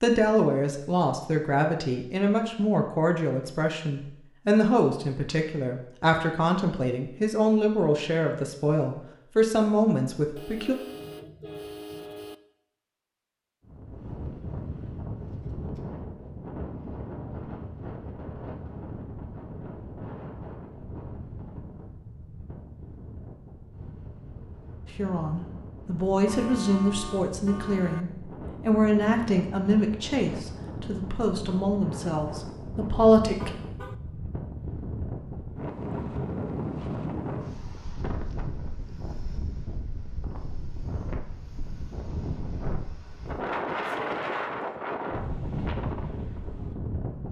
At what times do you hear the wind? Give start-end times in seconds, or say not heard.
13.7-47.2.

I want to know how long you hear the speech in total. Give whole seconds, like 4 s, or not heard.
19 s.